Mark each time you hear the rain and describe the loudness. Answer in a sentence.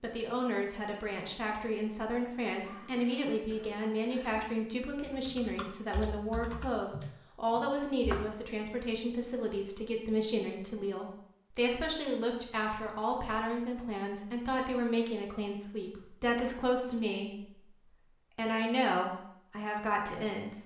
The rain can't be heard in this clip.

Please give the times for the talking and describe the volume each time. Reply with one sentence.
The talking can be heard from 0.0 to 20.6 s, at a steady volume.